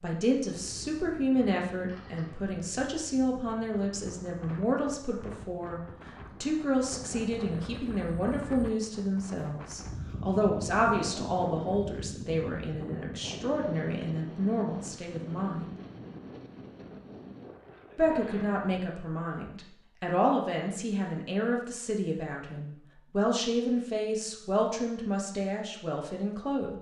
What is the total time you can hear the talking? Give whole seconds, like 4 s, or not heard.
24 s.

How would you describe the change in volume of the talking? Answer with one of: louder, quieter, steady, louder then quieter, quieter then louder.
steady.